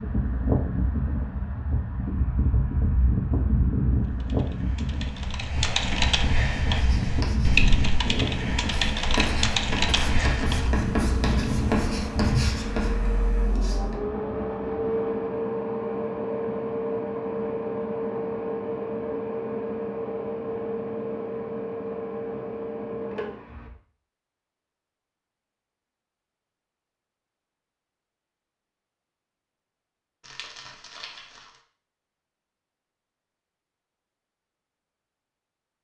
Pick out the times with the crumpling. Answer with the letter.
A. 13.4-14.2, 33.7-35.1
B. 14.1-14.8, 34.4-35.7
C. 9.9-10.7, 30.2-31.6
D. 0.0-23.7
C.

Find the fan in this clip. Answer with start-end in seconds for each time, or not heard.
0.0-23.7.